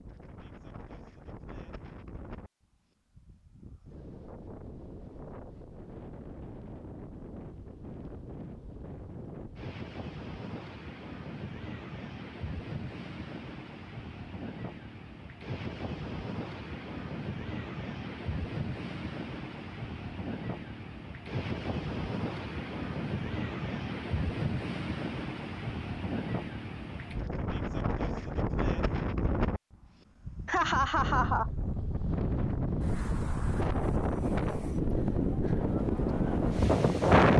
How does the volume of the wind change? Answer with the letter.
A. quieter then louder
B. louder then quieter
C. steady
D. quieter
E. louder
E.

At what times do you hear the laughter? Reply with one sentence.
You can hear the laughter from 30.4 to 31.5 s.